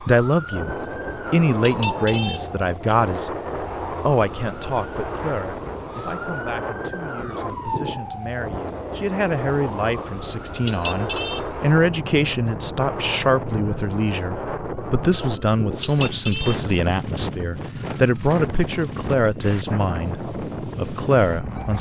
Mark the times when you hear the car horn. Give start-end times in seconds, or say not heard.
1.6-2.5, 10.6-11.4, 15.8-16.6.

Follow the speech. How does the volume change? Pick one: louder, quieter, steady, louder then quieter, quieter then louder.
quieter then louder.